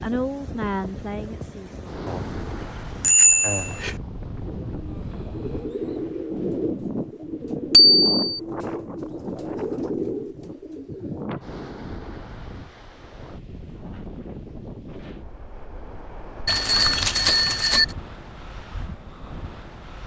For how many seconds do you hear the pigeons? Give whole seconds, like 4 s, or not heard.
7 s.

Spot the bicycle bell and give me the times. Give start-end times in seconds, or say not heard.
2.0-4.0, 7.7-8.4, 16.4-17.9.